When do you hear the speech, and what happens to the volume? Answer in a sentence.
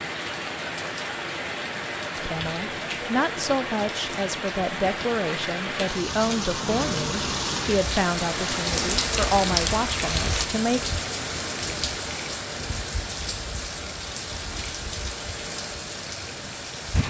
The speech can be heard from 2.1 to 10.8 s, at a steady volume.